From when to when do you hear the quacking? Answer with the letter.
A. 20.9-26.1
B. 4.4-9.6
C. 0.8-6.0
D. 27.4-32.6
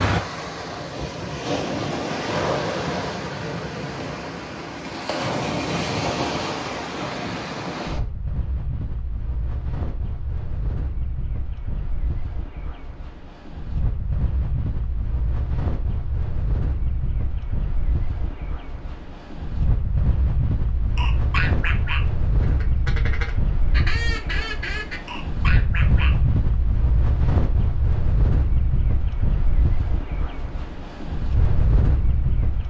A.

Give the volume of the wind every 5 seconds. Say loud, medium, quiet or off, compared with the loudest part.
loud, loud, medium, medium, loud, loud, loud.